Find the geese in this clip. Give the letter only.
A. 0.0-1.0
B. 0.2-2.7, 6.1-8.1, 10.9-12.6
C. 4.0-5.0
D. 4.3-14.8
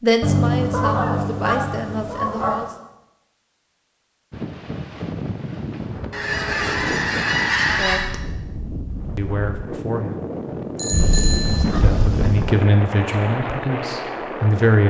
B.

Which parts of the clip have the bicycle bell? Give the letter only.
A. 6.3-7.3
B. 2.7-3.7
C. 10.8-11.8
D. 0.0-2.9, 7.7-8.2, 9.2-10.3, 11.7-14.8
C.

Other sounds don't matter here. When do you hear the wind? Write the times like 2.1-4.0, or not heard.
4.3-14.8.